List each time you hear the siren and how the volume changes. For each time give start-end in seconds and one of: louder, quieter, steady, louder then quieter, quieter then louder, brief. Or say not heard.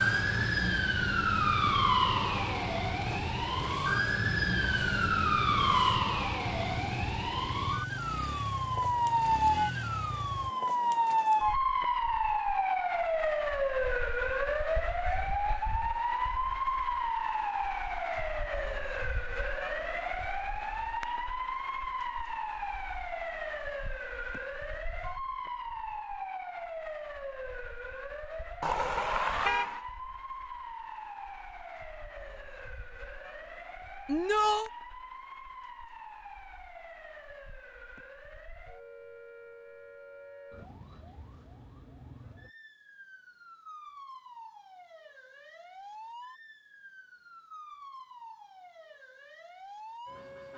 0.0-50.5 quieter.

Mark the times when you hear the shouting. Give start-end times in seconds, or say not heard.
34.0-34.7.